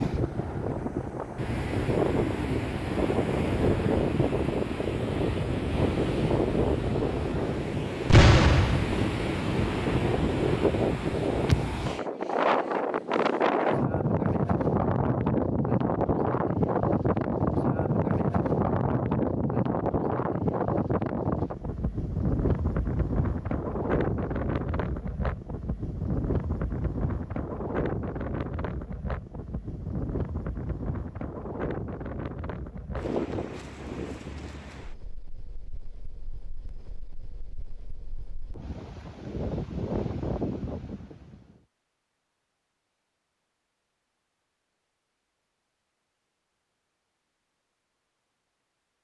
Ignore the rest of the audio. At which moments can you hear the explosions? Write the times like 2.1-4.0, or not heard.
8.1-9.0.